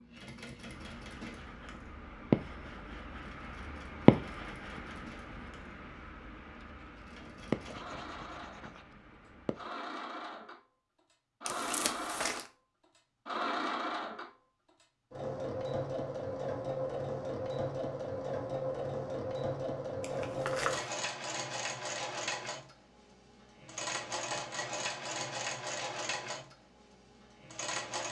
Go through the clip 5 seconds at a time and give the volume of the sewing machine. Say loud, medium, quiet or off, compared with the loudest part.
quiet, medium, loud, loud, loud, loud.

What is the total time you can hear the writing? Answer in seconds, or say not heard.
9 s.